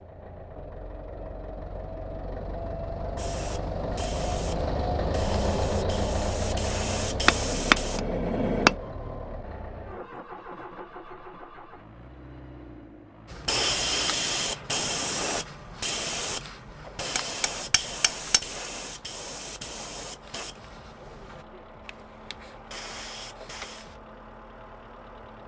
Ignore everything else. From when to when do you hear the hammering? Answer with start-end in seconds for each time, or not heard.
7.2-8.8, 17.1-18.6.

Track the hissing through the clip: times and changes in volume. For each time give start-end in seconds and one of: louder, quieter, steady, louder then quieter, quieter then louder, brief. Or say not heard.
3.1-8.0 louder
13.3-24.0 quieter.